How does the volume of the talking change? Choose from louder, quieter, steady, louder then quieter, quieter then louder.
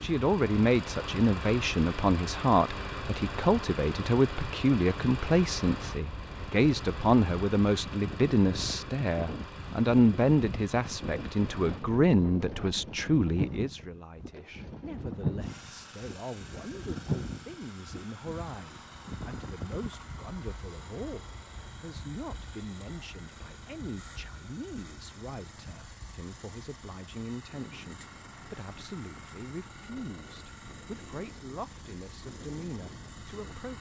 quieter.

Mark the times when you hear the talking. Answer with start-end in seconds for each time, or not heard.
0.0-33.7.